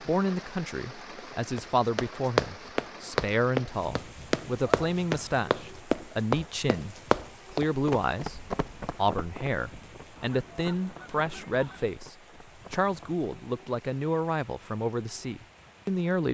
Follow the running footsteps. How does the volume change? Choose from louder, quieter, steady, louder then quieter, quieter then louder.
quieter.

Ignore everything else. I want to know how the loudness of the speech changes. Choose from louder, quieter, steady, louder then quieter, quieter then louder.
steady.